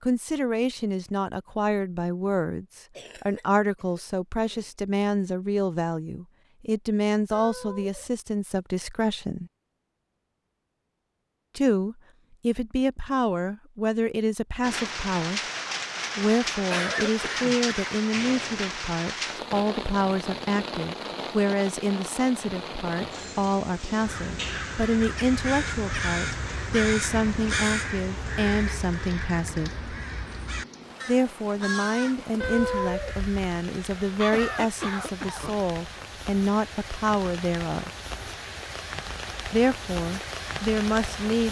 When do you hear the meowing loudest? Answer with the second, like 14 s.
33 s.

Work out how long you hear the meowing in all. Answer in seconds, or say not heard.
2 s.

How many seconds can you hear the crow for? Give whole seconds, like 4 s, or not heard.
11 s.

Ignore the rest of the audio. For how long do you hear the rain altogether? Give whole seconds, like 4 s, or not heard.
27 s.